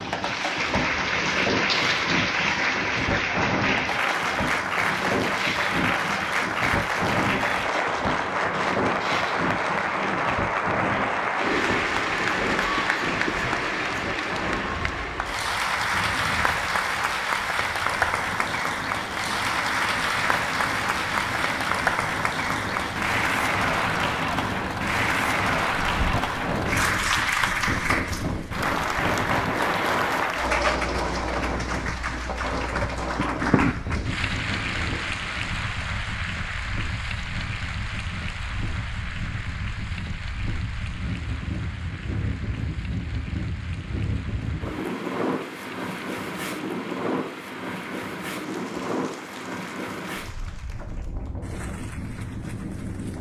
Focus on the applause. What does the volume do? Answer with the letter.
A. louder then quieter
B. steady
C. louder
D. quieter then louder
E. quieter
E.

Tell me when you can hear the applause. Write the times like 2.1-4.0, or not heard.
0.0-53.1.